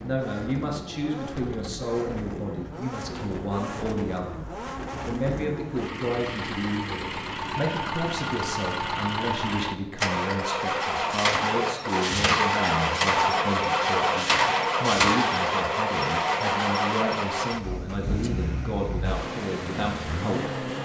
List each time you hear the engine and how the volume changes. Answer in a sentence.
You can hear the engine from 0.0 to 20.7 s, getting louder then quieter.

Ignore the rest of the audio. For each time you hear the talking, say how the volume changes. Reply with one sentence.
The talking can be heard from 0.0 to 20.6 s, at a steady volume.